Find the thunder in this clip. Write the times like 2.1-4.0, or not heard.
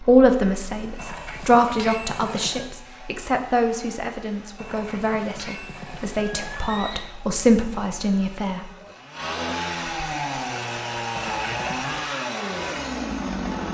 not heard.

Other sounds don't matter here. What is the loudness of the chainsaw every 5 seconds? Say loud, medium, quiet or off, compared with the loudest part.
quiet, medium, loud.